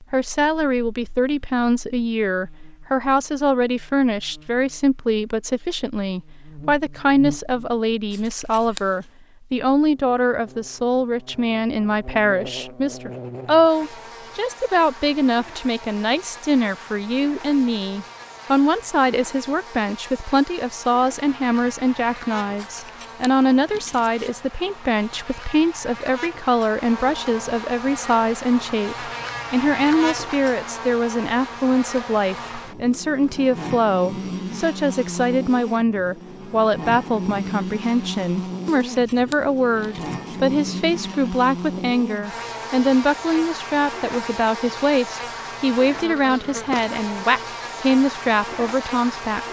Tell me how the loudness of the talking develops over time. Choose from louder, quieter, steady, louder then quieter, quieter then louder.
steady.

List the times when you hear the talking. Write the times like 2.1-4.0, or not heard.
0.1-49.4.